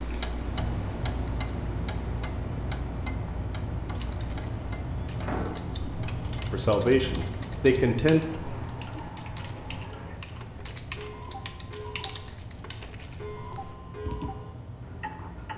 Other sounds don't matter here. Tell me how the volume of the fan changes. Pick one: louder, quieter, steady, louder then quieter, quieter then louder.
quieter.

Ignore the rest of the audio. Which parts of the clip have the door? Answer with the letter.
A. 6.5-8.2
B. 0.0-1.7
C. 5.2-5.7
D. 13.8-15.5
C.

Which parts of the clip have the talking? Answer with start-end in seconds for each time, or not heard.
6.5-8.2.